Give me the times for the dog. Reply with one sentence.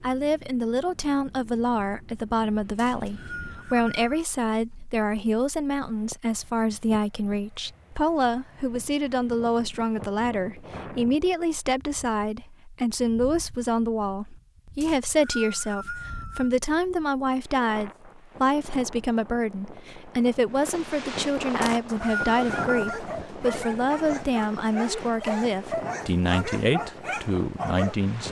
You can hear the dog from 21.9 to 27.9 s.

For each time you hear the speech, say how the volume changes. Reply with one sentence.
The speech can be heard from 0.0 to 28.2 s, at a steady volume.